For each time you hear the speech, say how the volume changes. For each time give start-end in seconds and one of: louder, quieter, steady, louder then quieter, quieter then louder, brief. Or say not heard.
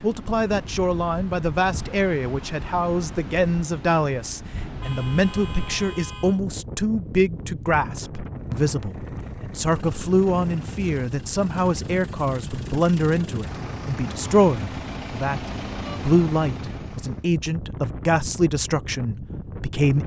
0.0-20.0 steady.